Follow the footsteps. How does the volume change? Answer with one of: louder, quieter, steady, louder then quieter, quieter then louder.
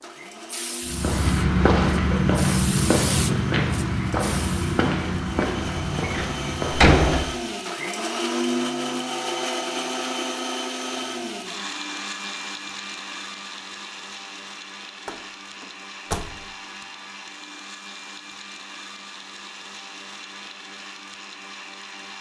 quieter.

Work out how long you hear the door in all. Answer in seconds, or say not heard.
3 s.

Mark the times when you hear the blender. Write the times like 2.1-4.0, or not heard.
0.0-22.1.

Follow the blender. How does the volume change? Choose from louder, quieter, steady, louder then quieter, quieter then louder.
louder then quieter.